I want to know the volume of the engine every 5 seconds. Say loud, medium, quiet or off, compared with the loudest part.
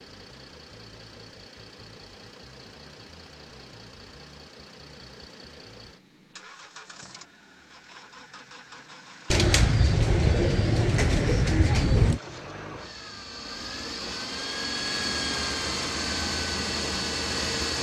quiet, quiet, medium, loud.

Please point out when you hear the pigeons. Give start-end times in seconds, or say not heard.
9.3-12.2.